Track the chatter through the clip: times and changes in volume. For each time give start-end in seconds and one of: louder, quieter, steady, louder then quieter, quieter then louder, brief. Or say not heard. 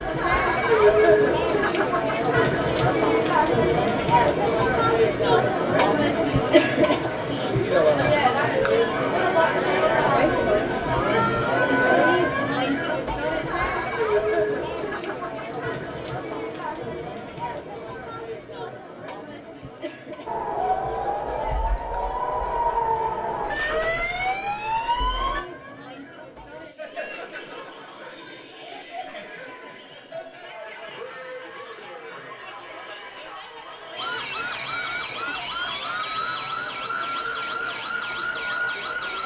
0.0-39.2 quieter.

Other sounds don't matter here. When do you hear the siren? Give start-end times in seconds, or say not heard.
20.2-25.4, 34.0-39.2.